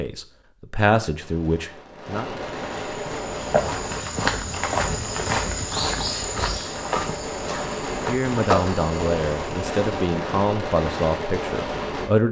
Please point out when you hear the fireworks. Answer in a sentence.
You can hear the fireworks from 1.1 to 12.1 s.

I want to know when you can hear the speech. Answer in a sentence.
The speech can be heard from 0.0 to 2.4 s and from 8.1 to 12.2 s.